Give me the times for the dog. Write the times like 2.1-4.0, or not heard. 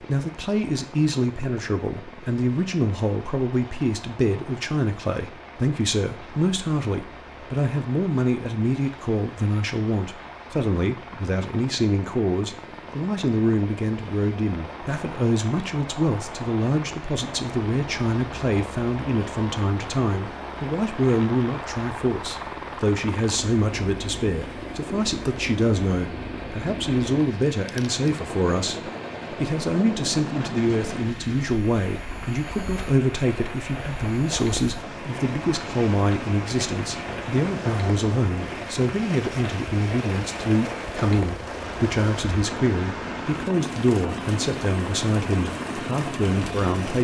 not heard.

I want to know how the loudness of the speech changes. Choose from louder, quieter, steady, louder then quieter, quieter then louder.
steady.